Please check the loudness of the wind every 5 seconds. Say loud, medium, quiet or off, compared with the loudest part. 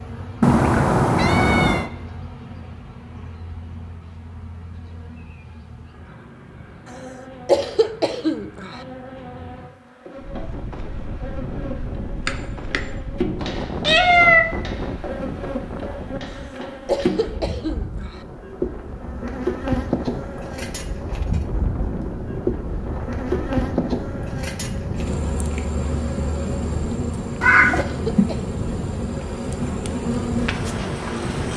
off, off, loud, medium, loud, loud, loud.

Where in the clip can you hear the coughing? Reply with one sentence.
The coughing can be heard from 7.5 to 8.8 s, from 16.9 to 18.2 s and from 27.8 to 28.5 s.